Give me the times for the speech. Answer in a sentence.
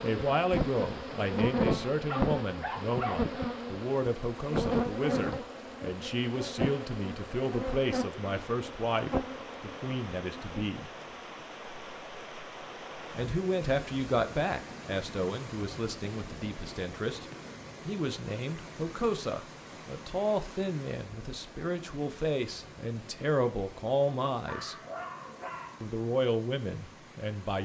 The speech can be heard from 0.0 to 10.9 s, from 13.2 to 17.2 s, from 17.9 to 24.8 s and from 25.8 to 27.6 s.